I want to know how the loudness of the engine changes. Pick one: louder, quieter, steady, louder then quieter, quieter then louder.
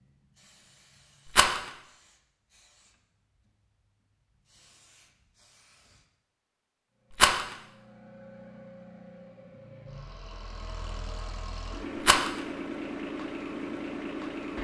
louder.